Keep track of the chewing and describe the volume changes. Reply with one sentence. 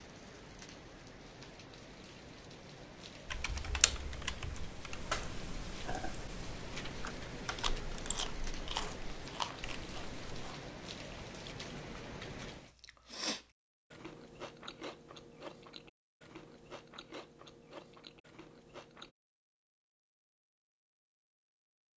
The loudness of the chewing goes down.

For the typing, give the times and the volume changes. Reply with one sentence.
The typing can be heard from 3.2 to 10.6 s, getting quieter.